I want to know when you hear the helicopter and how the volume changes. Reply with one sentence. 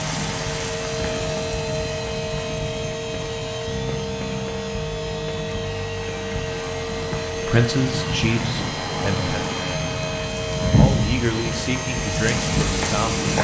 You can hear the helicopter from 0.0 to 13.3 s, at a steady volume.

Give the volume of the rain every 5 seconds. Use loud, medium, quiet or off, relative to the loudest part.
medium, medium, loud.